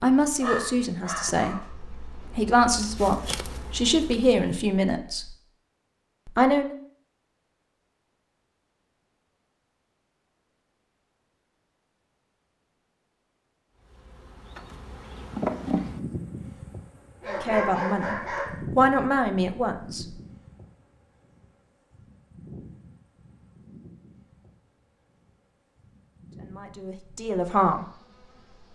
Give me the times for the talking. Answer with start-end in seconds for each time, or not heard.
0.0-5.3, 6.2-6.8, 17.2-18.1, 18.8-20.2, 26.4-27.9.